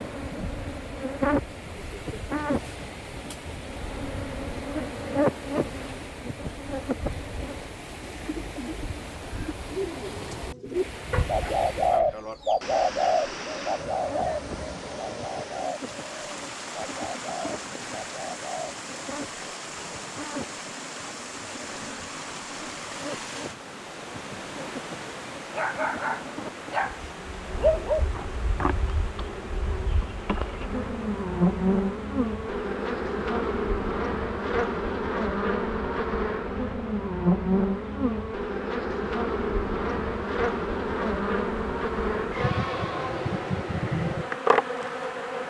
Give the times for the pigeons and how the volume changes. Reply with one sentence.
You can hear the pigeons from 8.0 to 18.8 s, getting louder then quieter.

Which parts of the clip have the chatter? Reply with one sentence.
The chatter can't be heard in this clip.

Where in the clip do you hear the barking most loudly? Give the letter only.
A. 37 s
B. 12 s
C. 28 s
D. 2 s
C.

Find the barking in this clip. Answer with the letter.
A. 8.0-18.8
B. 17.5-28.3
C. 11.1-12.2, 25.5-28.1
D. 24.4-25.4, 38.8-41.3
C.